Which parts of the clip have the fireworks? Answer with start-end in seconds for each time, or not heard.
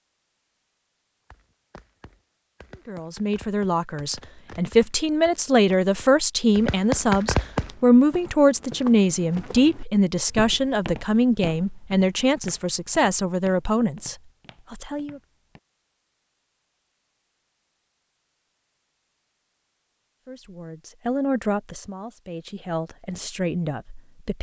1.3-7.8.